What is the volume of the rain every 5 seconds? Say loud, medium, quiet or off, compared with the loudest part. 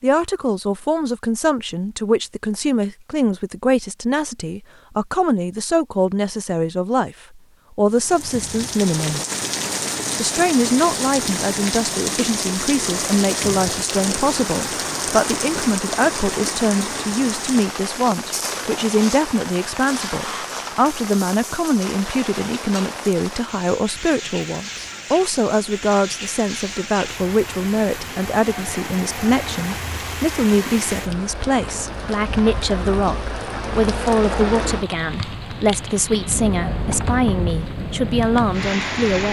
off, loud, loud, loud, medium, medium, loud, loud.